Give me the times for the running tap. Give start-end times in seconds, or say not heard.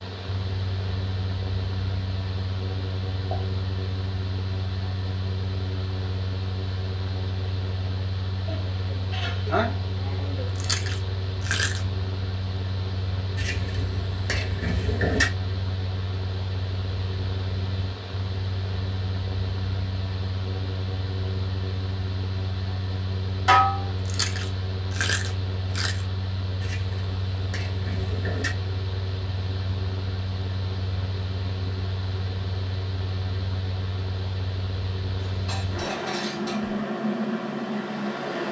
not heard.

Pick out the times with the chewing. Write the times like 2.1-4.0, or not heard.
10.6-11.8, 24.1-26.1.